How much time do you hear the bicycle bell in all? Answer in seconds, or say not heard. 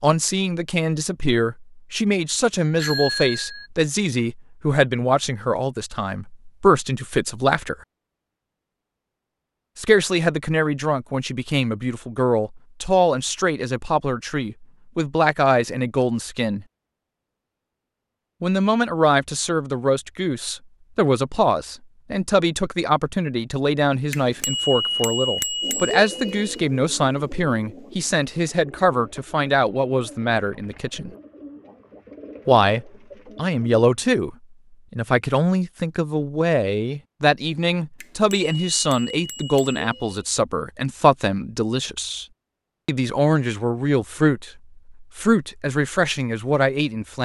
6 s.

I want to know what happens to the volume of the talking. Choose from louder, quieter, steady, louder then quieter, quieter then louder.
steady.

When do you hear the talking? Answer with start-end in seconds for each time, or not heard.
0.0-7.8, 9.8-16.6, 18.4-31.1, 32.5-42.2, 42.9-47.2.